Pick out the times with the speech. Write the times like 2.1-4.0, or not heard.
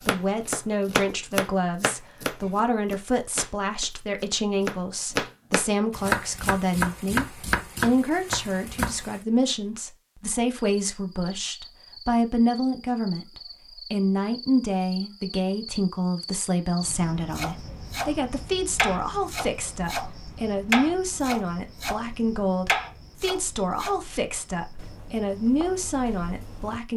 0.1-26.9.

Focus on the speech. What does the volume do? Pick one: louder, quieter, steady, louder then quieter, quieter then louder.
steady.